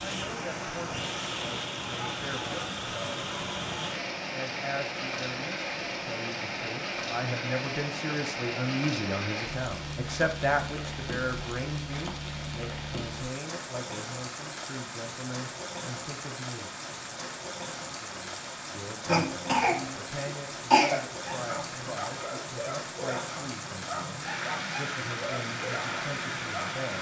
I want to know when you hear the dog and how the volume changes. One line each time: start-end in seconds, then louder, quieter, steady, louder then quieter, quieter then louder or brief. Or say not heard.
21.1-26.8 steady.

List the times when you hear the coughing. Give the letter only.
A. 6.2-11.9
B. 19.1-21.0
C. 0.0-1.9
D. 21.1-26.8
B.